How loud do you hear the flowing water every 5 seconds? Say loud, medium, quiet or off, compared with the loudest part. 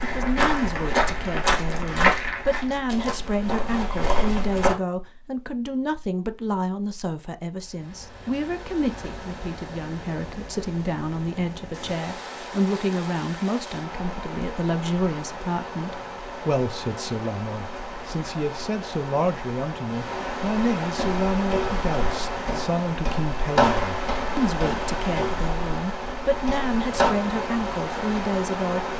off, medium, medium, medium, loud, loud.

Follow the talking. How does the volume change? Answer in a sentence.
The loudness of the talking stays about the same.